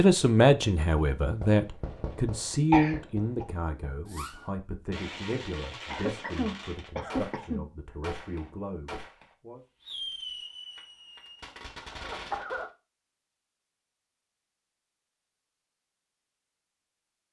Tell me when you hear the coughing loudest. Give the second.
3 s.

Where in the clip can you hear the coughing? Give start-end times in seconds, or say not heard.
2.7-3.5, 5.9-7.7, 11.8-12.7.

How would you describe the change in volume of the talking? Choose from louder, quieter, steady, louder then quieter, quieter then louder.
quieter.